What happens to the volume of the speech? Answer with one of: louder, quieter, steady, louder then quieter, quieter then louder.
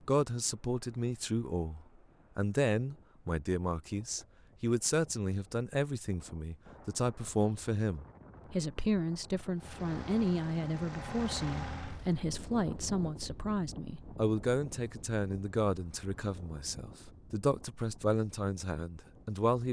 steady.